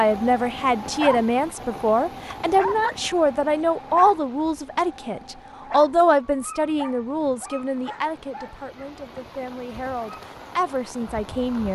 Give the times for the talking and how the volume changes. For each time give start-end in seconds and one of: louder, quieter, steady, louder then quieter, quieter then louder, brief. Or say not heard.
0.0-11.6 quieter.